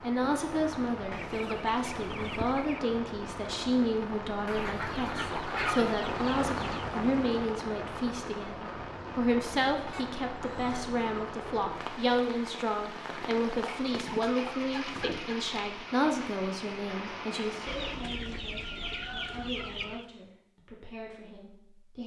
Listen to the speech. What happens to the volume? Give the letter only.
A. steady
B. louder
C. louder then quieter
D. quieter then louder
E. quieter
E.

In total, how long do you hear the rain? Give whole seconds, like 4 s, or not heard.
18 s.